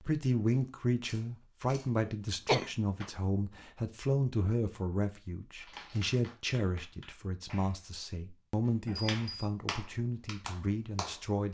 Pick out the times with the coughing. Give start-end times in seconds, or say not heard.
2.0-3.1.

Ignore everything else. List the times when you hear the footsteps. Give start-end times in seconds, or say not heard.
not heard.